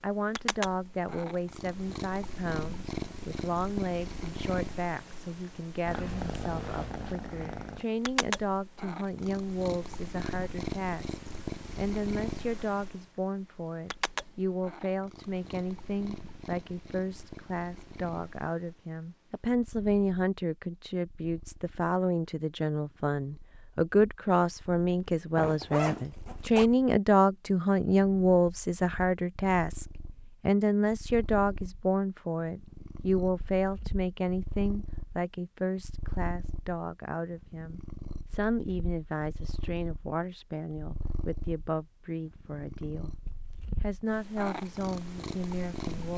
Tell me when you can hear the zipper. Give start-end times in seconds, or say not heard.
25.4-26.7.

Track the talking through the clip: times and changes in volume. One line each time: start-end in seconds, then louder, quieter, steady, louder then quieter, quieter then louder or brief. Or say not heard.
0.0-43.2 louder then quieter
43.8-46.1 brief.